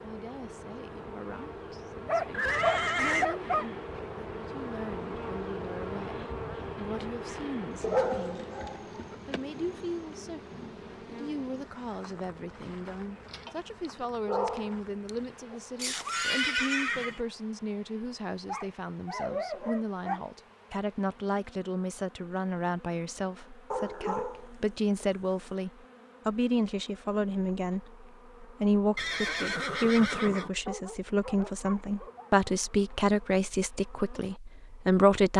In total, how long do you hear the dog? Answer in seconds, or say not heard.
11 s.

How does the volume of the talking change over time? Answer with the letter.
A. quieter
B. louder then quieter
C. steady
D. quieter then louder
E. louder
E.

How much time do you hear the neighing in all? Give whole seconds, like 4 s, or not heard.
4 s.